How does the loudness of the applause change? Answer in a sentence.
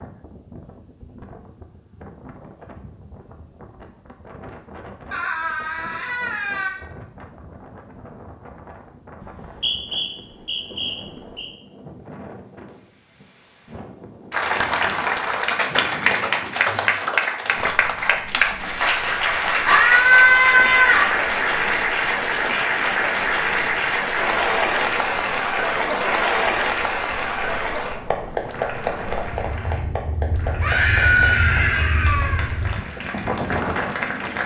The loudness of the applause goes down.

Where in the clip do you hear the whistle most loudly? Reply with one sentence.
The loudest moment of the whistle is at 10 seconds.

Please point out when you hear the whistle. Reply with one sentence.
You can hear the whistle from 9.2 to 11.5 s.